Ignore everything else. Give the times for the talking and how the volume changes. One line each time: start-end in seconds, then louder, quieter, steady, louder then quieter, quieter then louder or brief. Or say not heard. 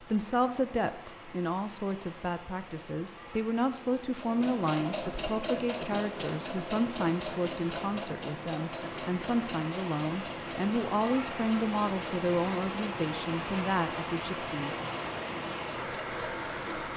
0.0-14.8 steady.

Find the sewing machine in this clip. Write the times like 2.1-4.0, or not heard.
4.2-16.9.